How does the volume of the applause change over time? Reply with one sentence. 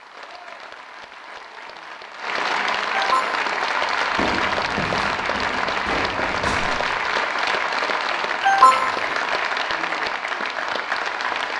The loudness of the applause goes up.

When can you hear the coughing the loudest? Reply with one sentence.
The volume of the coughing peaks at 9 seconds.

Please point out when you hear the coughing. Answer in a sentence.
You can hear the coughing from 2.9 to 3.5 s and from 8.4 to 9.1 s.